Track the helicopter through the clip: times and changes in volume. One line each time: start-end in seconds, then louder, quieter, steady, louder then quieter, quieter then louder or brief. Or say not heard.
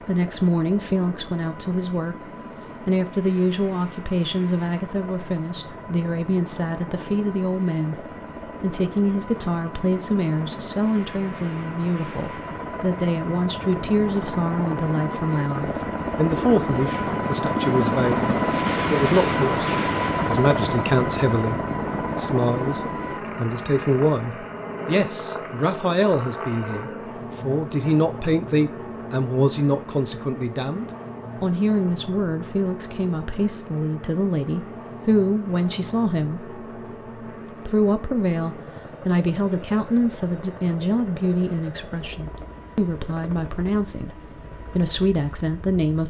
0.0-46.0 louder then quieter.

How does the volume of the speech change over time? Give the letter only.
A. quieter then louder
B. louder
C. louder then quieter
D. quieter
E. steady
E.